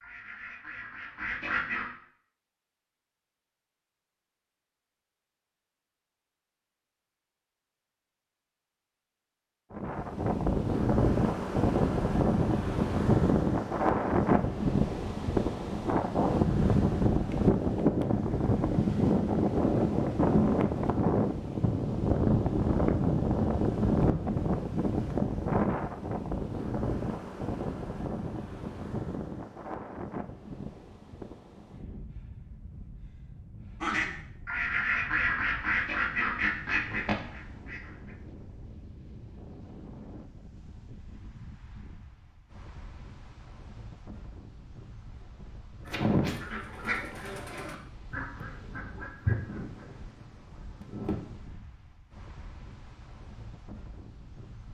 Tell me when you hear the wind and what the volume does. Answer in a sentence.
The wind can be heard from 9.7 to 54.6 s, getting quieter.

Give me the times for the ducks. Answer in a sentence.
You can hear the ducks from 0.0 to 1.9 s, from 33.8 to 38.1 s and from 45.9 to 51.1 s.